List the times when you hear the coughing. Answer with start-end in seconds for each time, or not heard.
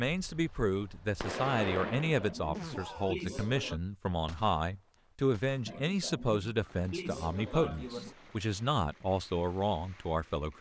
2.0-3.8, 5.7-8.2.